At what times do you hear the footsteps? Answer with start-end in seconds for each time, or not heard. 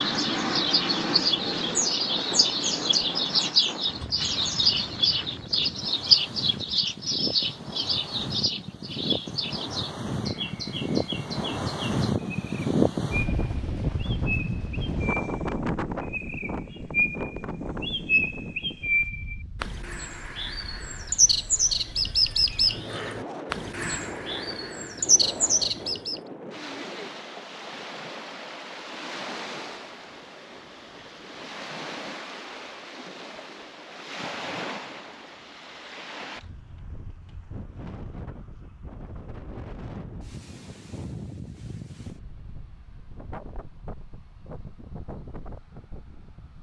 not heard.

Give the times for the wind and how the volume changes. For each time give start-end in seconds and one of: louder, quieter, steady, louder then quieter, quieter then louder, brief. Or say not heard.
0.0-46.5 louder then quieter.